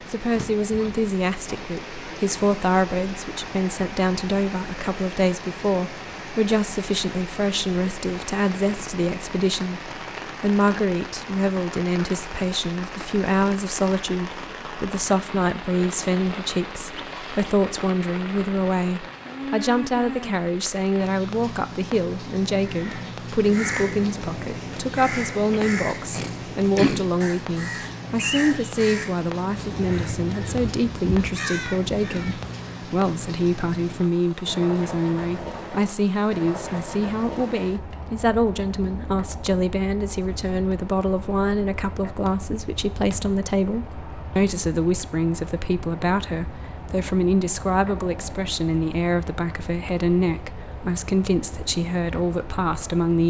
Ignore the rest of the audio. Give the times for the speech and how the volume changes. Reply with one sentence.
The speech can be heard from 0.0 to 53.2 s, at a steady volume.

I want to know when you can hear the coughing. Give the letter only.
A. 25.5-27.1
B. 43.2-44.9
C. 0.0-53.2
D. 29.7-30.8
A.